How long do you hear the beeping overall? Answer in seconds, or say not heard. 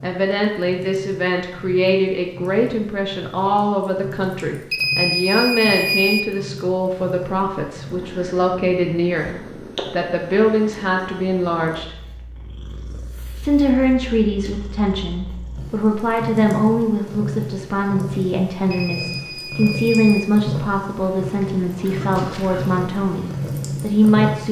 3 s.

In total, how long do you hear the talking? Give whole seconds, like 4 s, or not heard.
23 s.